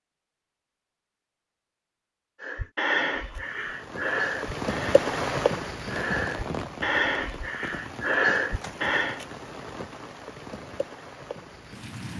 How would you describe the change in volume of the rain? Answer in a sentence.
The loudness of the rain goes down.